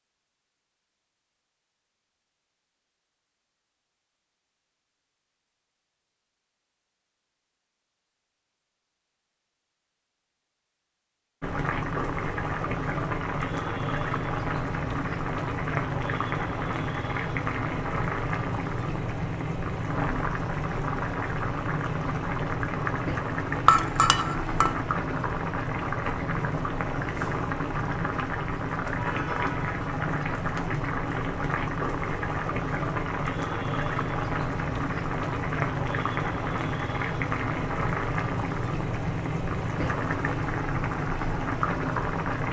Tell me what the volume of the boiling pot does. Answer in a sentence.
The loudness of the boiling pot stays about the same.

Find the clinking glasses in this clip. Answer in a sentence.
You can hear the clinking glasses from 23.6 to 24.8 s.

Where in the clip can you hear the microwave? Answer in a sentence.
The microwave can't be heard in this clip.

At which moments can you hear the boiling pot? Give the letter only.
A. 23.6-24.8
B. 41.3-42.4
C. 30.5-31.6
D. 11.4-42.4
D.